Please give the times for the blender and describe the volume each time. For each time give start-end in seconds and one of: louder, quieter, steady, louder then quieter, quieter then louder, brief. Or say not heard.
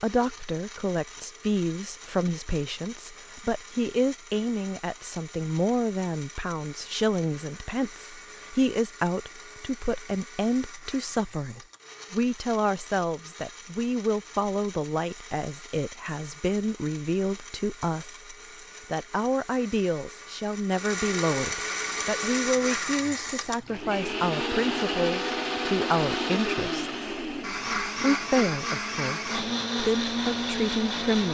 0.0-31.2 louder.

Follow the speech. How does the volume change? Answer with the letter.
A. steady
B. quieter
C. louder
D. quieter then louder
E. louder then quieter
A.